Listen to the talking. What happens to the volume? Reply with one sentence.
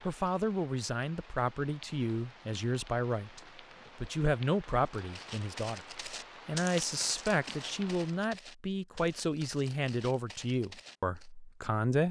The loudness of the talking stays about the same.